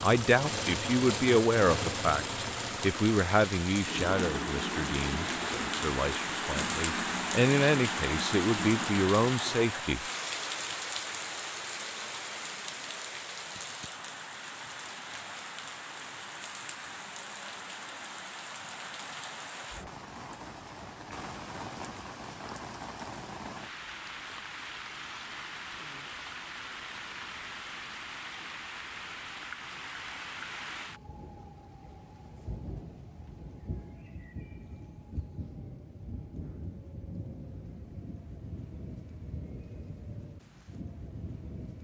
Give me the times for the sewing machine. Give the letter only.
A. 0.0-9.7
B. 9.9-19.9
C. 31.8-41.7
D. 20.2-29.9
A.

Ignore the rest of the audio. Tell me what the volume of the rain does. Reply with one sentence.
The volume of the rain goes down.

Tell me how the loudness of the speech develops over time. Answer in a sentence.
The volume of the speech goes down, then up.